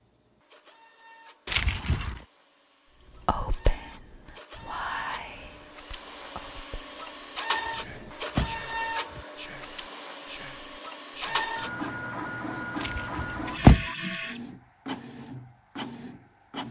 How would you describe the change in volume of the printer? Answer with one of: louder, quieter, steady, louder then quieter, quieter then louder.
louder.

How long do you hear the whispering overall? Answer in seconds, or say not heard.
9 s.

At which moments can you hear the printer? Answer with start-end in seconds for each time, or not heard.
0.0-16.6.